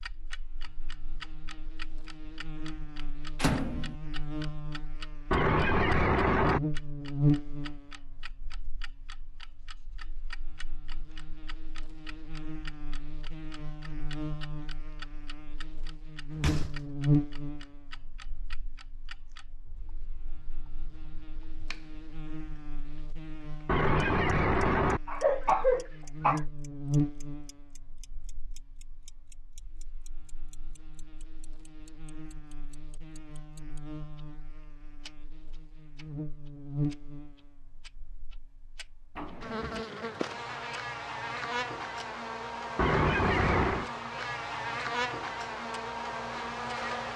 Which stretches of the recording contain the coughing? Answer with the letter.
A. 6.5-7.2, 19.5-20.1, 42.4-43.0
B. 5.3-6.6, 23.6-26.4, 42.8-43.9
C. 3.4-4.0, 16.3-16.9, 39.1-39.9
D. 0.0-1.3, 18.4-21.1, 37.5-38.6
B.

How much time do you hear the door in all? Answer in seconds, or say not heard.
2 s.